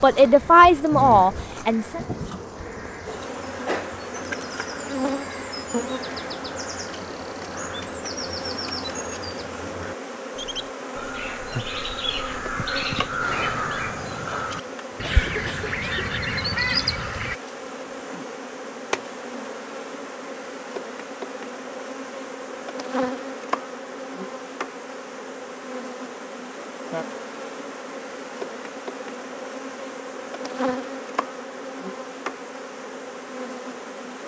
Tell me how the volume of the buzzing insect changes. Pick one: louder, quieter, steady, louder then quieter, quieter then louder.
steady.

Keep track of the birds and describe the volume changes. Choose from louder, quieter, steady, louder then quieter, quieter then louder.
louder.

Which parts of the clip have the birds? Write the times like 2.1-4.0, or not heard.
0.0-17.4.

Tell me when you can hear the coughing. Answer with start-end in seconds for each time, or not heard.
15.0-16.1.